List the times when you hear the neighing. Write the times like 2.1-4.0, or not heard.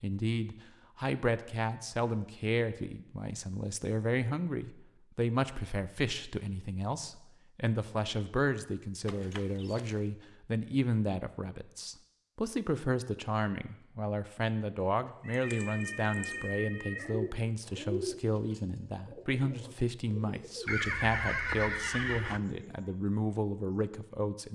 9.1-10.1, 20.6-22.4.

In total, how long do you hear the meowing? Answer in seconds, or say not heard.
2 s.